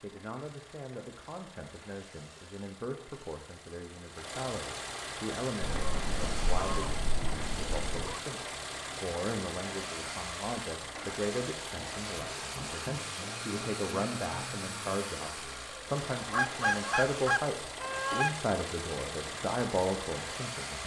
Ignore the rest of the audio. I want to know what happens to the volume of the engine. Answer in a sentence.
The loudness of the engine goes up.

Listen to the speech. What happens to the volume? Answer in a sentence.
The volume of the speech goes up.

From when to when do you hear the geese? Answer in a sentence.
You can hear the geese from 5.6 to 8.2 s and from 16.3 to 18.3 s.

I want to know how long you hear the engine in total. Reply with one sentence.
You can hear the engine for 21 seconds altogether.